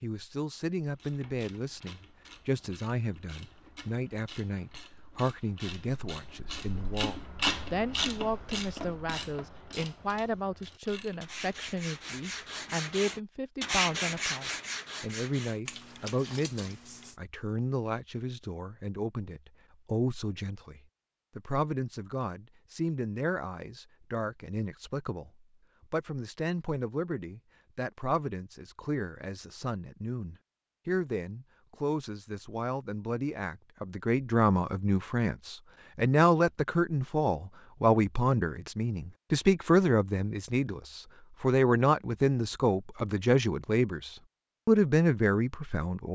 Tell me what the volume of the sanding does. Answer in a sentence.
The volume of the sanding goes up, then down.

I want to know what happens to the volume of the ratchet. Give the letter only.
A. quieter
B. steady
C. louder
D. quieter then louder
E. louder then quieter
E.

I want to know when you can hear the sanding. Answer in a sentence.
You can hear the sanding from 11.2 to 17.1 s.